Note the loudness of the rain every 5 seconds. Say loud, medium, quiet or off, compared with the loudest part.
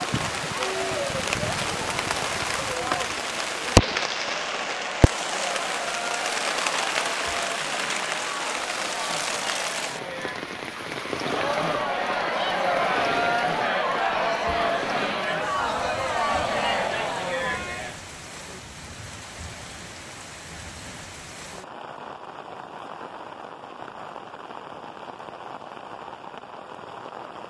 loud, loud, medium, quiet, quiet, quiet.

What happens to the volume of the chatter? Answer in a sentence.
The volume of the chatter goes up.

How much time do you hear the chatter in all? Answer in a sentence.
The chatter can be heard for 18 seconds in total.